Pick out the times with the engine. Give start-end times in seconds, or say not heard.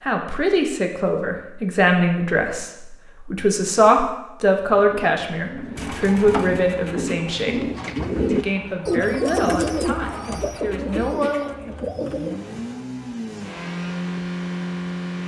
5.8-15.2.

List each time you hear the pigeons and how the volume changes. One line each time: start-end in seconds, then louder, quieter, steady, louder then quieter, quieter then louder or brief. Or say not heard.
4.7-12.6 louder then quieter.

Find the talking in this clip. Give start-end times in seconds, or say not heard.
0.0-7.7, 8.3-11.6.